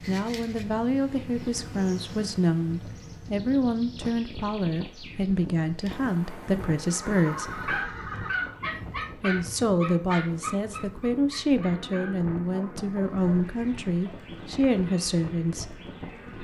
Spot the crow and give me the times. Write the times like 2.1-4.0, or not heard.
not heard.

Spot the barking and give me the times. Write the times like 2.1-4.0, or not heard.
7.5-13.4.